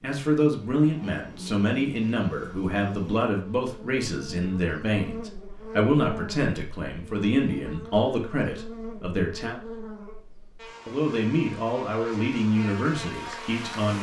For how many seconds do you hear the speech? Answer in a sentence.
The speech can be heard for 13 seconds in total.